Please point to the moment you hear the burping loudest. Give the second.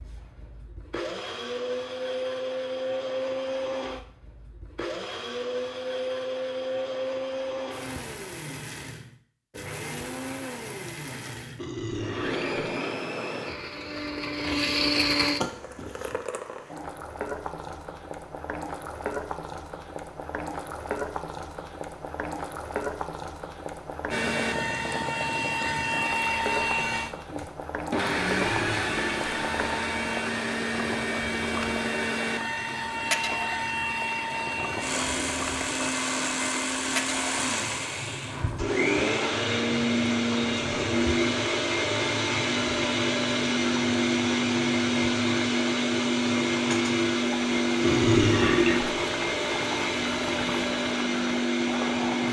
48 s.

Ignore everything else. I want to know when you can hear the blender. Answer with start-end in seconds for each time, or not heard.
0.0-16.2, 24.1-52.2.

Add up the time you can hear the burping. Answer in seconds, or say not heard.
3 s.